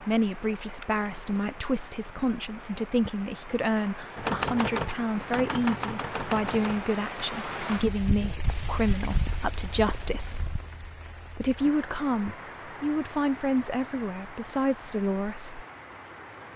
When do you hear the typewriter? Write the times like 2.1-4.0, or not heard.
4.2-6.8.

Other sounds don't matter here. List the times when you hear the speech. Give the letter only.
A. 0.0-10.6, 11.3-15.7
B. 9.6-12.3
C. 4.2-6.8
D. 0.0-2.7
A.